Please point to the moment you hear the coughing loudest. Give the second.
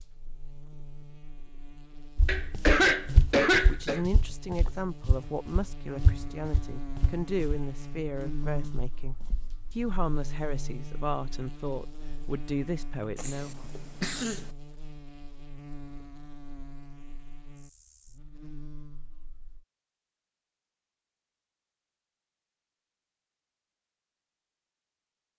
3 s.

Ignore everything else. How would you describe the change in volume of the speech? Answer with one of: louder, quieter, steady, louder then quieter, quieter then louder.
steady.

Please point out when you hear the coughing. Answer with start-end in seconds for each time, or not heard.
2.2-4.0, 13.2-14.4.